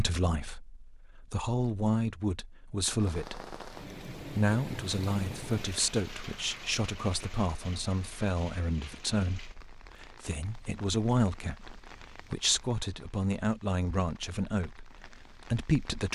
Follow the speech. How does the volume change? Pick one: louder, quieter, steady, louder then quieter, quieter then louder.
steady.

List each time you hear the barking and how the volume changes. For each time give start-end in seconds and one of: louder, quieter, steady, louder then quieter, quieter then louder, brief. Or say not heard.
not heard.